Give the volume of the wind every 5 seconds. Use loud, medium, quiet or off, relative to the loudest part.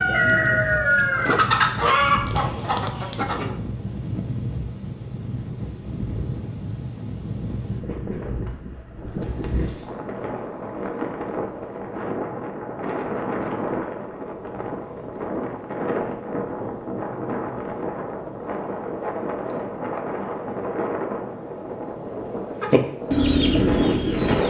medium, medium, loud, loud, loud.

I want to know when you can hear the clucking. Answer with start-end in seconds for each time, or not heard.
0.0-3.5, 22.6-24.4.